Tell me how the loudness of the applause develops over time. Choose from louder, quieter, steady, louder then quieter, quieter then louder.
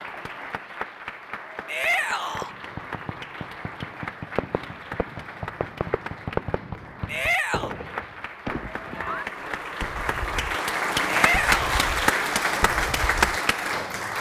louder.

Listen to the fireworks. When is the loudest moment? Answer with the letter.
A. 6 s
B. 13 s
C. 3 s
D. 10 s
A.